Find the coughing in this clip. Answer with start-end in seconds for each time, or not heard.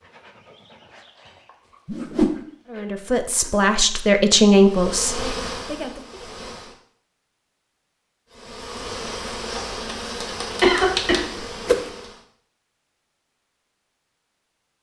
10.6-11.2.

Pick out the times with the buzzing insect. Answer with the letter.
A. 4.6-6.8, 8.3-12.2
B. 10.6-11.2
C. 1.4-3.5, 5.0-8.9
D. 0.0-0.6
A.